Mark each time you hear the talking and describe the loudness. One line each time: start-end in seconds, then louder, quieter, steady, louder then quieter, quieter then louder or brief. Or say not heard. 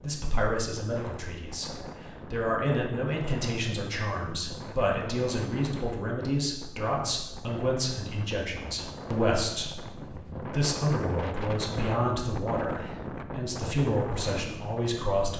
0.0-15.3 steady.